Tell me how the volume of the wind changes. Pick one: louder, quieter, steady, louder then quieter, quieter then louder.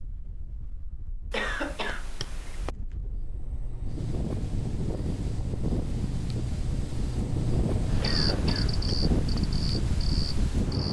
louder.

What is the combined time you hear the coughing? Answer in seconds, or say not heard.
3 s.